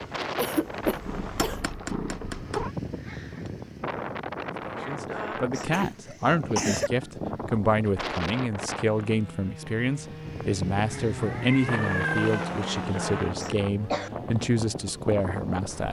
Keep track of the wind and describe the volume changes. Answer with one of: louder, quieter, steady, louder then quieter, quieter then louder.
steady.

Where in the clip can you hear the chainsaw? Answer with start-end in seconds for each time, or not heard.
8.8-15.8.